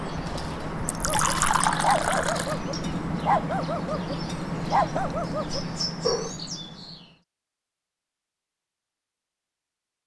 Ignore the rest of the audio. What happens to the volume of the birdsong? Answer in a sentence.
The volume of the birdsong stays about the same.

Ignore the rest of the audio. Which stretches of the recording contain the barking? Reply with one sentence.
The barking can be heard from 1.1 to 6.3 s.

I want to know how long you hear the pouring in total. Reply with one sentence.
You can hear the pouring for 2 seconds altogether.